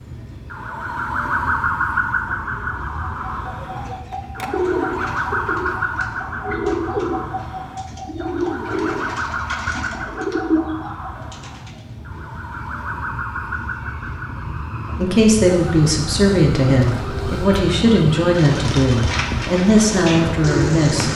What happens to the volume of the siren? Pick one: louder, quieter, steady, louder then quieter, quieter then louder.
quieter.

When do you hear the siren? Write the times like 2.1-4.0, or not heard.
0.0-21.1.